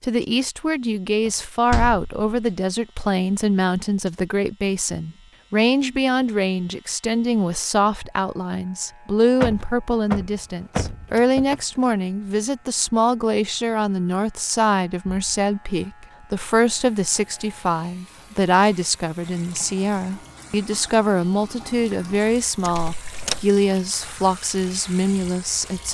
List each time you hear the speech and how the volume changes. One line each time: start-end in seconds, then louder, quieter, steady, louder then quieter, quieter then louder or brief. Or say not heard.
0.0-25.8 steady.